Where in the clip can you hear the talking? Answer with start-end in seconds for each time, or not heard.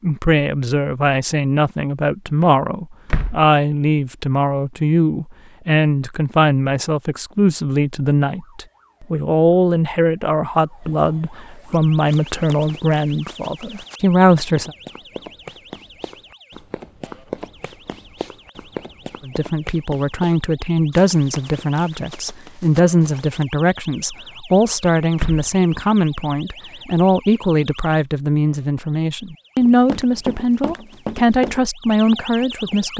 0.0-14.7, 19.2-32.9.